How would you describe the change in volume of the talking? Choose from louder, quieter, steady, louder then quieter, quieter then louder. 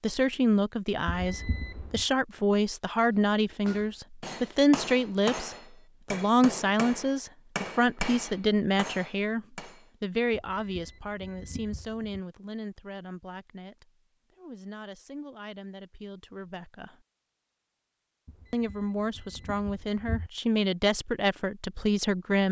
quieter then louder.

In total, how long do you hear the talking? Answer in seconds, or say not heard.
21 s.